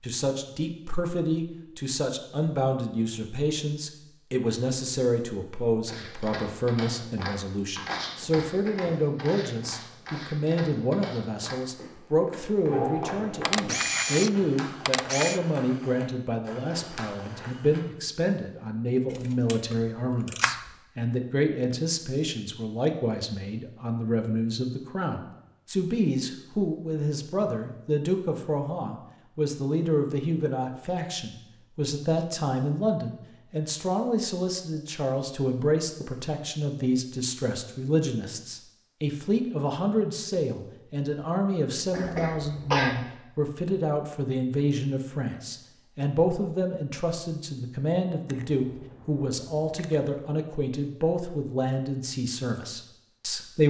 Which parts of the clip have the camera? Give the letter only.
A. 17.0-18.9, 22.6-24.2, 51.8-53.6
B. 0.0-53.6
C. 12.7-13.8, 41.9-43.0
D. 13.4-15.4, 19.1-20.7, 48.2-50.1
D.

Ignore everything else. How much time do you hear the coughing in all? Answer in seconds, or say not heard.
2 s.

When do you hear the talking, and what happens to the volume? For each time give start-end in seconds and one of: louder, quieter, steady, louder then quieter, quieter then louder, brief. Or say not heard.
0.0-53.6 steady.